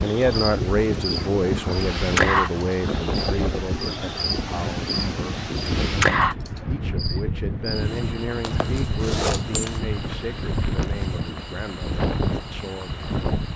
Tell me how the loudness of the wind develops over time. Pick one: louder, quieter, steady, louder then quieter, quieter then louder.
steady.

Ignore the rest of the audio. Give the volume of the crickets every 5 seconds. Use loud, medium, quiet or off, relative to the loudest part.
loud, loud, quiet.